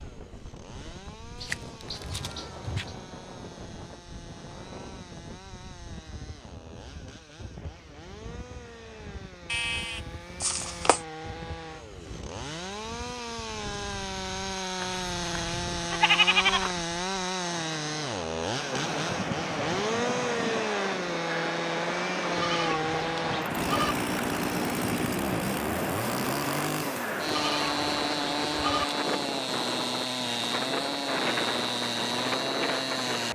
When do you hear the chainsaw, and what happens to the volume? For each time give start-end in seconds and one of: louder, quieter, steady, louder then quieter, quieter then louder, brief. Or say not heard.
0.0-33.3 louder.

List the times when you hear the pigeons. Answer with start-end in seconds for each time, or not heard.
not heard.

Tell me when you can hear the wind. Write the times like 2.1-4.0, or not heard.
0.0-33.3.